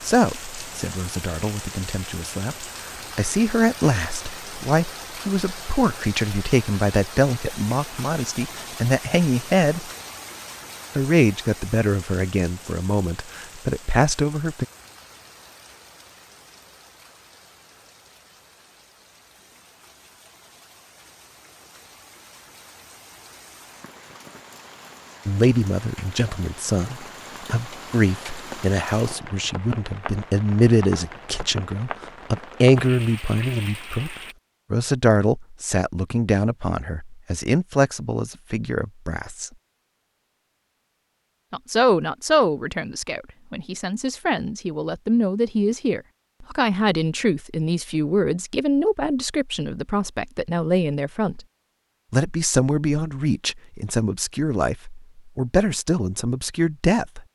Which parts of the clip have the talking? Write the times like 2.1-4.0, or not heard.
0.0-9.8, 10.9-14.7, 25.2-39.5, 41.5-51.4, 52.1-57.2.